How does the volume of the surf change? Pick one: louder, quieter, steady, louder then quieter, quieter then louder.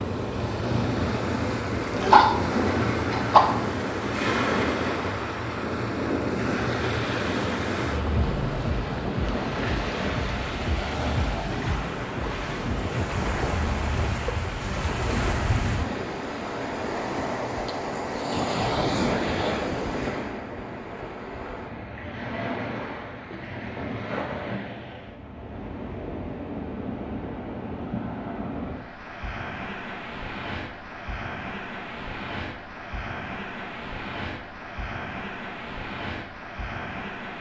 quieter.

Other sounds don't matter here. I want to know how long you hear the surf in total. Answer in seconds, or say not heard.
37 s.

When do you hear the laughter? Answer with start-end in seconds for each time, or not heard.
not heard.